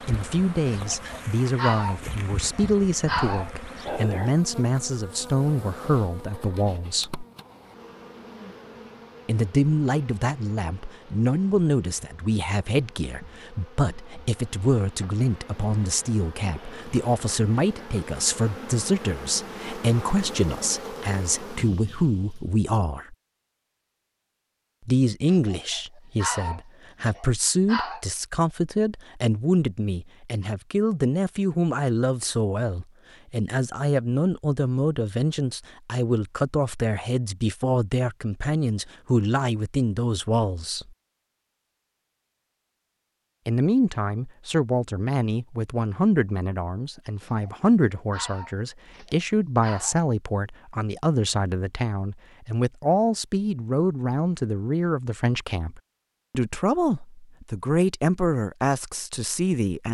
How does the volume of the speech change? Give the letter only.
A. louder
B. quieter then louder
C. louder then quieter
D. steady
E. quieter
D.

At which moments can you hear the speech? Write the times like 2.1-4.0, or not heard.
0.1-7.2, 9.2-23.1, 24.9-40.9, 43.5-59.8.